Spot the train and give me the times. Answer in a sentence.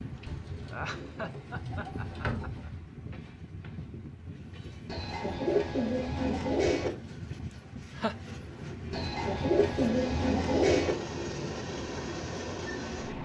You can hear the train from 0.0 to 13.2 s.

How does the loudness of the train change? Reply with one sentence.
The loudness of the train goes up.